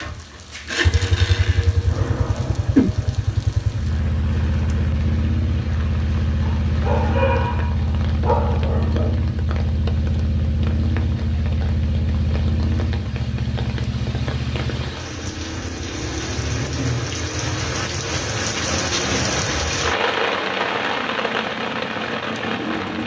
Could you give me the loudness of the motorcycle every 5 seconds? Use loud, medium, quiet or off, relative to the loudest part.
loud, loud, loud, medium, medium.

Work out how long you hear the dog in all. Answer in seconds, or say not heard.
3 s.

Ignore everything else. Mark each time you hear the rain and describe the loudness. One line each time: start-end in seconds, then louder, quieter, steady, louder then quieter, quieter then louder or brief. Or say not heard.
0.0-23.0 louder.